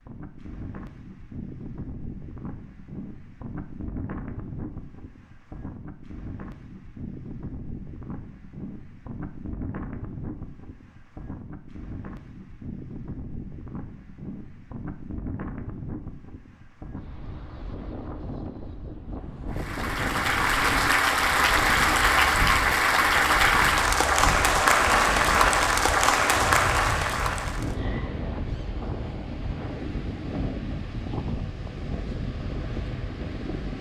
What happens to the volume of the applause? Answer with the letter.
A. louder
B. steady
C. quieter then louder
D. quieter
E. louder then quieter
B.